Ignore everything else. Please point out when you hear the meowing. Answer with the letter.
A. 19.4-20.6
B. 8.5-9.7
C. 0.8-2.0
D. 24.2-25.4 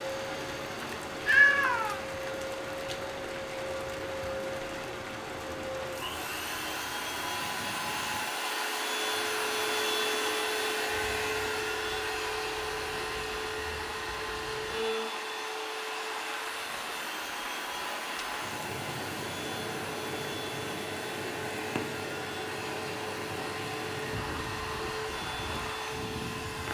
C.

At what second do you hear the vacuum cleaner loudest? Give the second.
10 s.